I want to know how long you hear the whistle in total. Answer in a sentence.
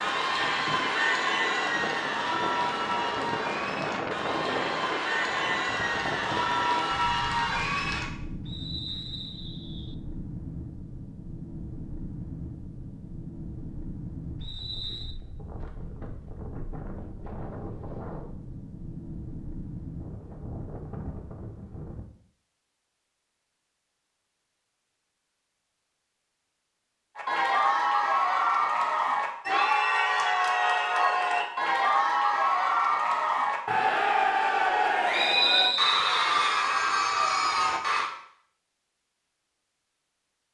The whistle can be heard for 4 seconds in total.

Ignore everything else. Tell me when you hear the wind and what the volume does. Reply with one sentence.
You can hear the wind from 0.0 to 22.1 s, getting quieter.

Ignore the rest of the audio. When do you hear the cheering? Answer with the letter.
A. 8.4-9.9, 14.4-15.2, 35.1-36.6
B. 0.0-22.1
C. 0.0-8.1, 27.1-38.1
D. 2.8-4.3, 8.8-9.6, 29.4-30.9
C.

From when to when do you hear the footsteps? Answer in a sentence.
The footsteps can't be heard in this clip.